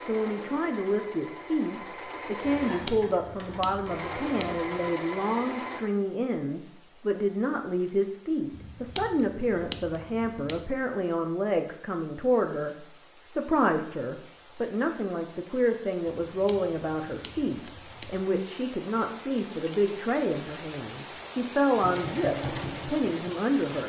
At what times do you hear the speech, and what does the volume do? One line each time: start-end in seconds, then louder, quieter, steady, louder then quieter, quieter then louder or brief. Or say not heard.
0.0-23.8 steady.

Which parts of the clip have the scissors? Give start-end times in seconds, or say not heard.
2.5-4.9, 8.5-10.7, 16.2-18.3.